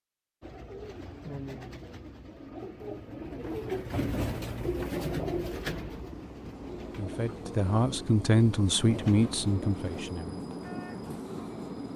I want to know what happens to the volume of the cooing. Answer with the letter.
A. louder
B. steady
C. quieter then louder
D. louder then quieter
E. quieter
D.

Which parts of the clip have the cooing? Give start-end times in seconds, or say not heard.
0.4-10.2.